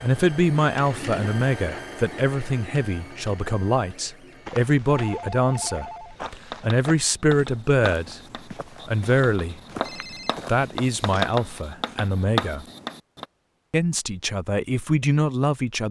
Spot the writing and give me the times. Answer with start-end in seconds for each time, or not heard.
6.2-13.2.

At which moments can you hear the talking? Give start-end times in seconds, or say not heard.
0.0-8.2, 8.8-9.6, 10.4-12.7, 13.7-15.8.